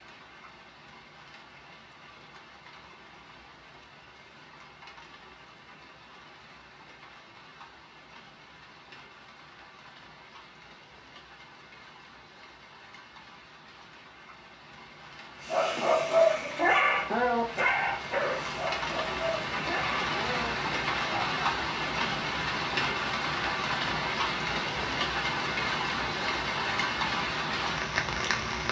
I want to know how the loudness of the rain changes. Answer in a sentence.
The volume of the rain goes up.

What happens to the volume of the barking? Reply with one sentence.
The volume of the barking goes down.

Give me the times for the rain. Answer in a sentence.
You can hear the rain from 0.0 to 28.6 s.